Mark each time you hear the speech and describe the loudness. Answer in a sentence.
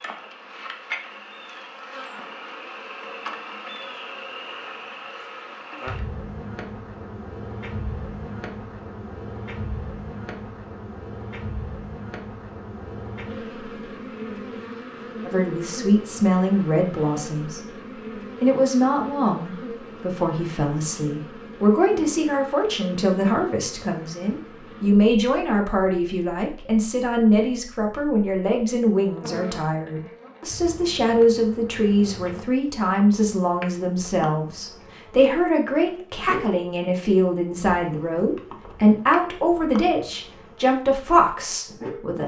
The speech can be heard briefly from 15.2 to 17.6 s; and from 18.4 to 42.2 s, at a steady volume.